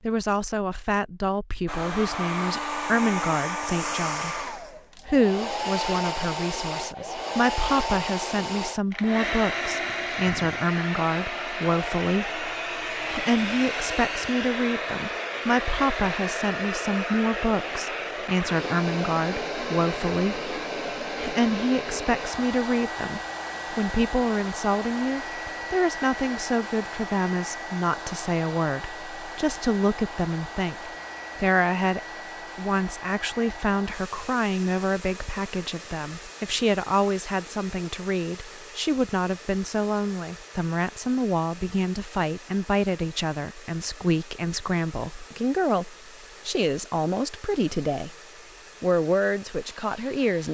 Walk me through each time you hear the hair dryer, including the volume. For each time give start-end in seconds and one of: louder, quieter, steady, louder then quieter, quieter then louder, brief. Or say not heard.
1.6-50.4 quieter.